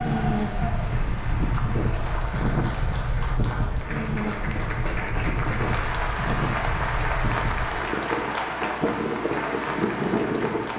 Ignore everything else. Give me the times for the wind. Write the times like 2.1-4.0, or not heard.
0.0-10.7.